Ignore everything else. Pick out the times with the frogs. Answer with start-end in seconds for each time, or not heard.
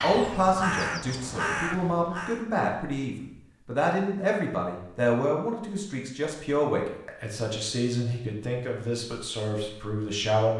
not heard.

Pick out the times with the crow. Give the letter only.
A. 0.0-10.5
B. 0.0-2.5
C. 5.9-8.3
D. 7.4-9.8
B.